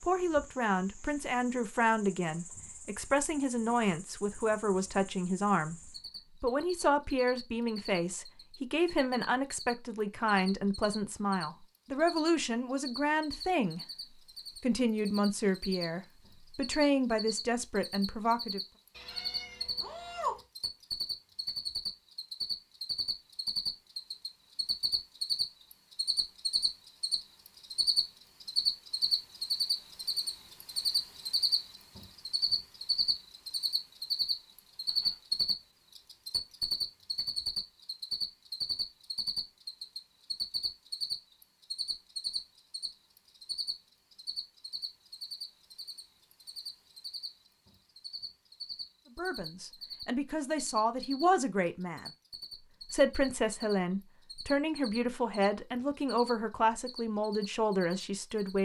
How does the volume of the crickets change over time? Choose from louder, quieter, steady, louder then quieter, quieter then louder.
louder then quieter.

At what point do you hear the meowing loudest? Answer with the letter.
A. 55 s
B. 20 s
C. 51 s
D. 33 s
B.